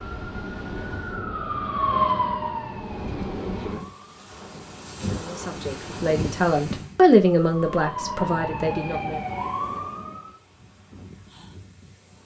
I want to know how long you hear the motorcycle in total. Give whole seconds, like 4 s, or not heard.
not heard.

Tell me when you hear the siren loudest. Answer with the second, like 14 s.
2 s.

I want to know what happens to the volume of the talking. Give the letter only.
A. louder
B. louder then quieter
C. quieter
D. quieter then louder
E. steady
B.